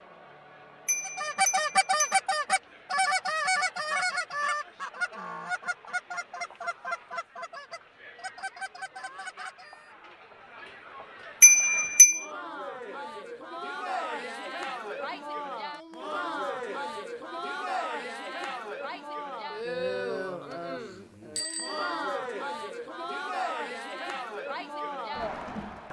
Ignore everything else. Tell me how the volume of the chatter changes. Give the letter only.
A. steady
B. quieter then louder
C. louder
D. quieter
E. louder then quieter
C.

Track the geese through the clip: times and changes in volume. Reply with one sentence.
The geese can be heard from 1.1 to 9.9 s, getting quieter.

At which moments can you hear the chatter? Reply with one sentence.
You can hear the chatter from 0.0 to 25.8 s.